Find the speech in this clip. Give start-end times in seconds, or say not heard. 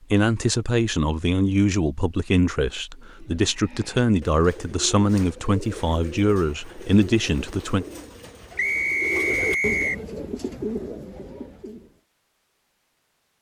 0.1-7.8.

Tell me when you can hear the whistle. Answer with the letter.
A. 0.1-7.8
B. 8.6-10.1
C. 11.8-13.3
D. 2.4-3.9
B.